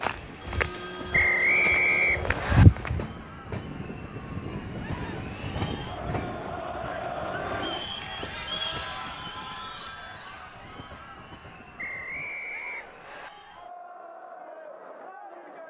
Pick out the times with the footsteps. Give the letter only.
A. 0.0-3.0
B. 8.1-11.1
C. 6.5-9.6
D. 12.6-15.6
A.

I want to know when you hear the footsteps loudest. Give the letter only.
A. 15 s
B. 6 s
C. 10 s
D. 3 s
D.